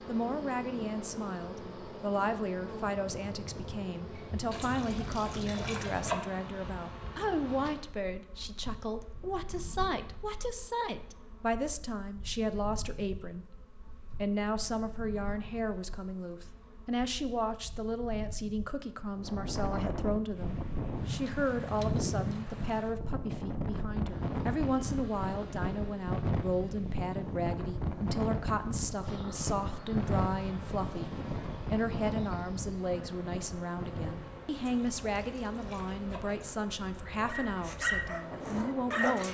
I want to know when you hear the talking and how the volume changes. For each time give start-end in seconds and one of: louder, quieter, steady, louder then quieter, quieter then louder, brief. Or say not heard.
0.1-39.2 steady.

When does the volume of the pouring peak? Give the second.
6 s.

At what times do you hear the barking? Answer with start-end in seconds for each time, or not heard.
37.2-39.2.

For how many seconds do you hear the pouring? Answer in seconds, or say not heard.
4 s.